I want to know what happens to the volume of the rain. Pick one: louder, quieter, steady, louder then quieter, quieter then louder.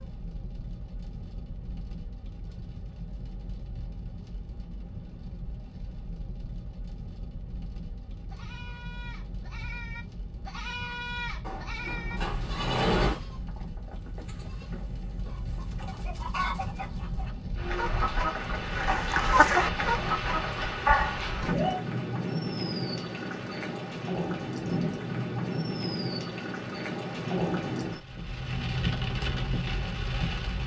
louder.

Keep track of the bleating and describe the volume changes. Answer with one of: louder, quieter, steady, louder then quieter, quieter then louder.
louder then quieter.